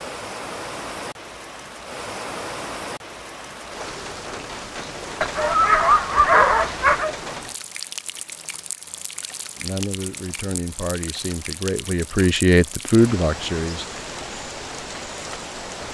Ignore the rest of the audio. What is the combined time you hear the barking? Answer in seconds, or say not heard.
2 s.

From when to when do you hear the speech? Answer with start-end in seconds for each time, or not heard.
9.6-13.8.